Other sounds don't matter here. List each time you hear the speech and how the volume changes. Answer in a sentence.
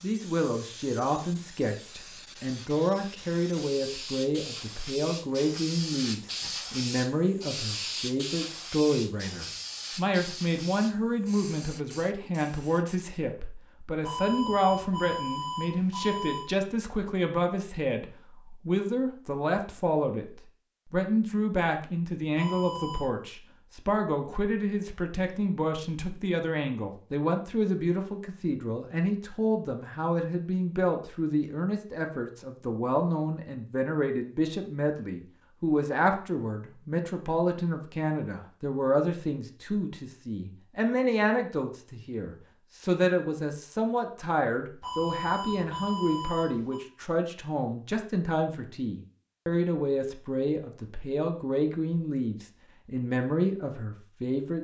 The speech can be heard from 0.0 to 20.2 s, at a steady volume; and from 20.9 to 54.6 s, at a steady volume.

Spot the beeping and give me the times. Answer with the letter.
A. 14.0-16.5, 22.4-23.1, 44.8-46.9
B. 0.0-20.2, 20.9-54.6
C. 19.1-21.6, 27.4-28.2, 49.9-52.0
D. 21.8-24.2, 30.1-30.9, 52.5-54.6
A.